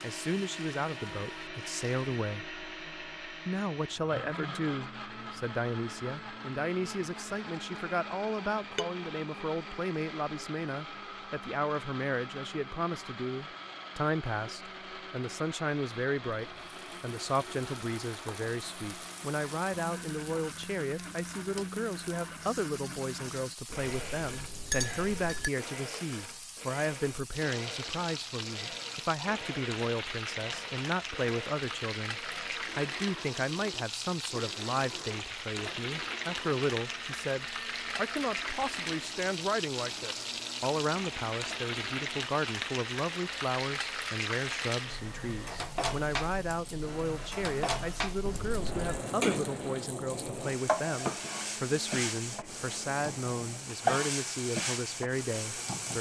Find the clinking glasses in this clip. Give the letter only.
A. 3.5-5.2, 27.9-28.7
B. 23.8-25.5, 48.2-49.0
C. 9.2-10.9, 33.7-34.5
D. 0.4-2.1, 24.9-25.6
B.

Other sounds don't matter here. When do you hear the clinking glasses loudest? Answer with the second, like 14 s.
25 s.